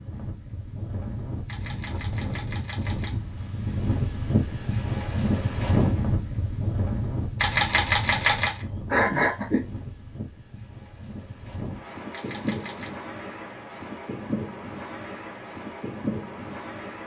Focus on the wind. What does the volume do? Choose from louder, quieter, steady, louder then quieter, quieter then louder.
louder then quieter.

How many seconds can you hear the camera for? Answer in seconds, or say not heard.
4 s.